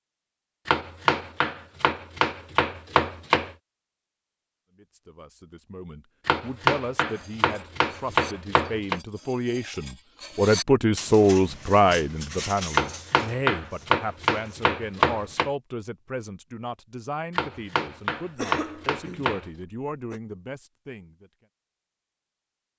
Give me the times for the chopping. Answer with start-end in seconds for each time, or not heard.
0.7-3.5, 6.2-9.0, 12.7-15.5, 17.3-19.5.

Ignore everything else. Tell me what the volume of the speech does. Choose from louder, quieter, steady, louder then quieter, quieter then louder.
louder then quieter.